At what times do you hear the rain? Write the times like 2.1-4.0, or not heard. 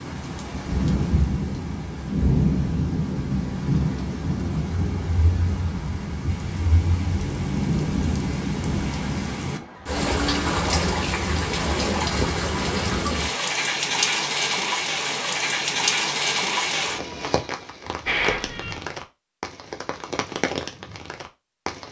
0.0-21.8.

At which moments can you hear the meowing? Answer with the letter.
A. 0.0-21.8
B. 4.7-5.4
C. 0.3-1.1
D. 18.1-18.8
D.